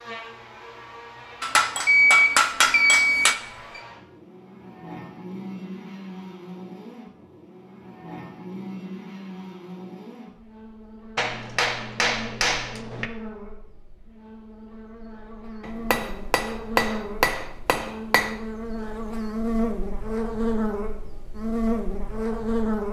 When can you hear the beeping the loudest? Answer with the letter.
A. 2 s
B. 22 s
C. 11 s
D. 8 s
A.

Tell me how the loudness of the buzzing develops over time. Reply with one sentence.
The volume of the buzzing goes up.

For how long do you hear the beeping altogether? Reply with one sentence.
You can hear the beeping for 2 seconds altogether.